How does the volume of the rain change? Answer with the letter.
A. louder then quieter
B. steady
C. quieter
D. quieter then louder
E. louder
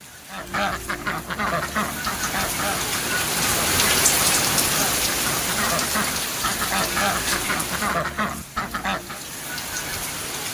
A.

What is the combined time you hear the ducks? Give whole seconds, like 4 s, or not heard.
9 s.